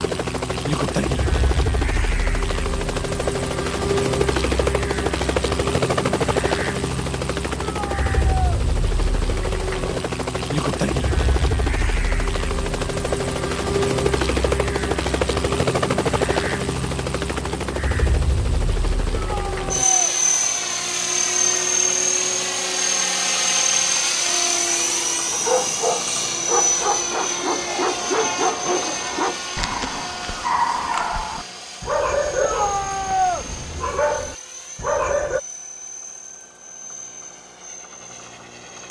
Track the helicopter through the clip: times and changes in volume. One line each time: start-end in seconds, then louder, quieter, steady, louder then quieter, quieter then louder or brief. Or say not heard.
0.0-38.8 quieter.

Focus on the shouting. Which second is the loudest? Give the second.
33 s.